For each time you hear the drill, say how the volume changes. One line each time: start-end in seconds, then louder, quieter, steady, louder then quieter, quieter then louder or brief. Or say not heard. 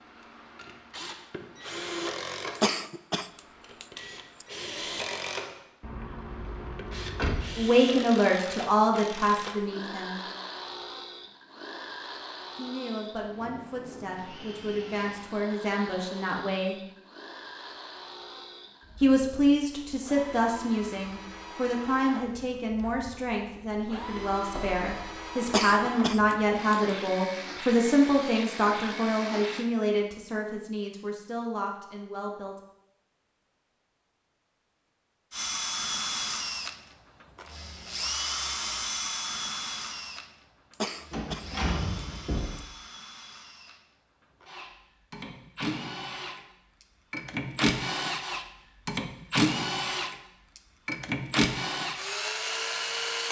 0.0-29.7 quieter then louder
35.3-53.2 quieter then louder.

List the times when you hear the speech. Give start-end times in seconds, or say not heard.
7.5-10.2, 12.6-16.8, 19.0-32.5.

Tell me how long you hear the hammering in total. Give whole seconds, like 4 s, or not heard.
not heard.